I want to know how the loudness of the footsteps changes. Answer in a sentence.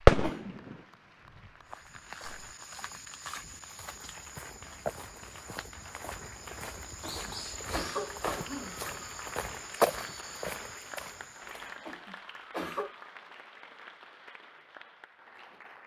The volume of the footsteps goes up.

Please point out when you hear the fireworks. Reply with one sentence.
The fireworks can be heard from 0.0 to 2.5 s.